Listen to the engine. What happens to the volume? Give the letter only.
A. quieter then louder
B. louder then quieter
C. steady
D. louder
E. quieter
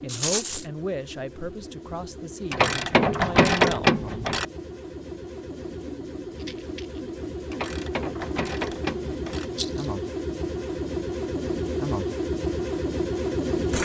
D.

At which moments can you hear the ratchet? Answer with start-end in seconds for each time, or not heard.
2.5-4.5, 7.5-9.4.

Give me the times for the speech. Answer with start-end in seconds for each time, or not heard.
0.0-4.0.